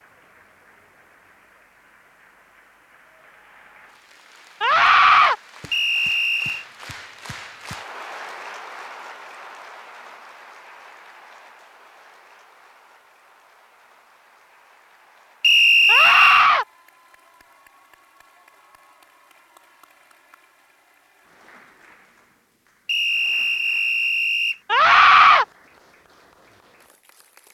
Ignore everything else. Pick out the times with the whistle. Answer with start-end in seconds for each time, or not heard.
5.7-6.7, 15.4-16.5, 22.9-24.6.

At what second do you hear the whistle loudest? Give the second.
16 s.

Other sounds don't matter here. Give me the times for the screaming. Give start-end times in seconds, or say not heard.
4.6-5.3, 15.8-16.6, 24.7-25.4.